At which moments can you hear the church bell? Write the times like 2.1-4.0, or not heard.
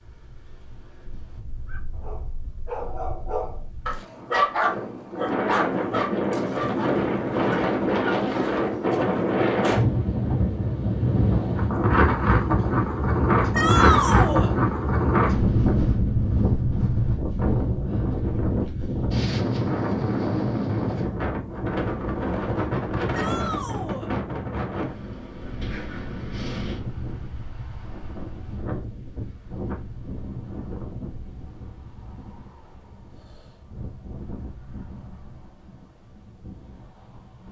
not heard.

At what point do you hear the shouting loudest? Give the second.
14 s.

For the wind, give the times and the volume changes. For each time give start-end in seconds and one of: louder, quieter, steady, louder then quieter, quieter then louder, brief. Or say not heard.
0.0-37.4 louder then quieter.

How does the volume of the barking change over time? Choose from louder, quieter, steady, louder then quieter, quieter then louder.
louder then quieter.